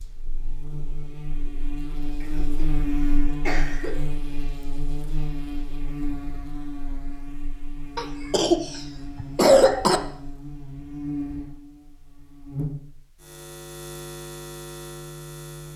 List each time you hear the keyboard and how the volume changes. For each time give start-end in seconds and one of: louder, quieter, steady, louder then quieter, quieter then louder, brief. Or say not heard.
not heard.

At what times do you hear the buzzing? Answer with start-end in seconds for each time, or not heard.
0.0-15.7.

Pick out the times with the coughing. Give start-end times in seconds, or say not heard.
2.2-2.6, 3.2-4.0, 8.0-10.0.